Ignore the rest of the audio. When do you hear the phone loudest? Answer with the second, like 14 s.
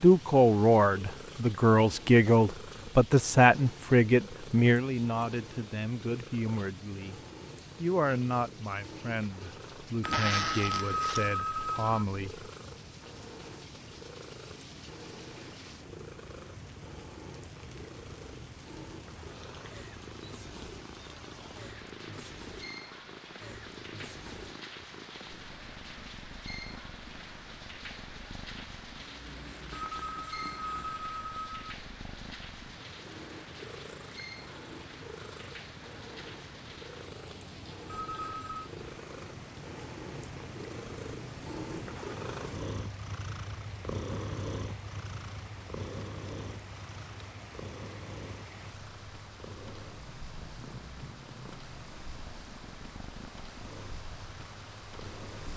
11 s.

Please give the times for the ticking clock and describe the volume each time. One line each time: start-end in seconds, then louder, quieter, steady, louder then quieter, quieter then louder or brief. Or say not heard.
not heard.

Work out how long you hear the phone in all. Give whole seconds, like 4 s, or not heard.
5 s.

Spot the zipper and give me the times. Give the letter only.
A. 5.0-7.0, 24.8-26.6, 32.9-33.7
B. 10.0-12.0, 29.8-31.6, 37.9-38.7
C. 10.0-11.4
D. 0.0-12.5
C.